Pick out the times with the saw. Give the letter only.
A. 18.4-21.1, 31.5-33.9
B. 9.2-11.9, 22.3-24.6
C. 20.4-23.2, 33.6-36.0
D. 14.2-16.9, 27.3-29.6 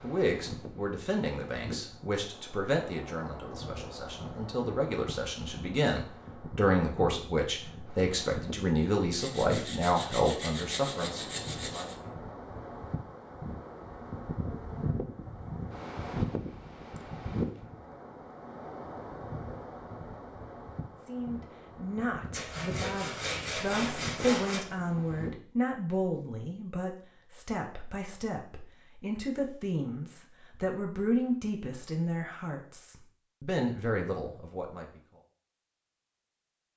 B.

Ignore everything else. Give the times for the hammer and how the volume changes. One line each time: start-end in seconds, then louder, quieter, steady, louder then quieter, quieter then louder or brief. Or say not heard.
not heard.